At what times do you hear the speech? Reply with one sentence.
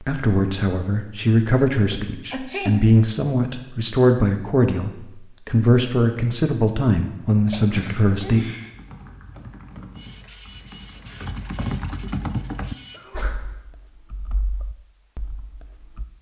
You can hear the speech from 0.0 to 8.4 s.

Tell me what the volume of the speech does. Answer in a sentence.
The volume of the speech stays about the same.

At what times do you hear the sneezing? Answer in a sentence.
The sneezing can be heard from 1.9 to 2.9 s, from 7.5 to 8.7 s and from 12.9 to 13.4 s.